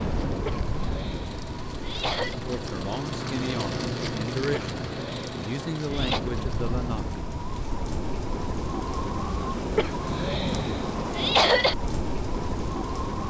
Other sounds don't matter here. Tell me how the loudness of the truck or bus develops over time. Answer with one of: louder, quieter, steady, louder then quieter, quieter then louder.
louder then quieter.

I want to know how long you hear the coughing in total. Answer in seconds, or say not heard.
6 s.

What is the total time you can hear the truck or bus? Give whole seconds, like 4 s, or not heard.
7 s.